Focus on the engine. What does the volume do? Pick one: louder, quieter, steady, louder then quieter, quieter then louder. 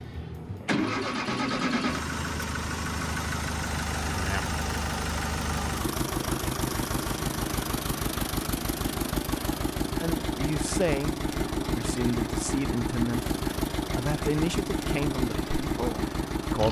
steady.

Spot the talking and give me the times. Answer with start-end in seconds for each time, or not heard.
10.0-13.2, 13.9-16.6.